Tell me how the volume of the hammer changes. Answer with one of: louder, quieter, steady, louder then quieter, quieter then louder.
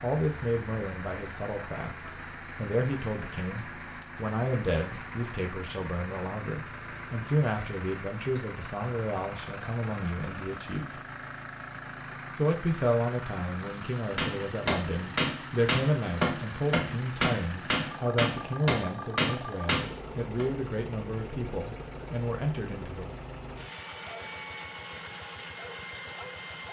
steady.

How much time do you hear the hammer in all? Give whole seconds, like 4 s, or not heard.
6 s.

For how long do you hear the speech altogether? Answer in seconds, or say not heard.
22 s.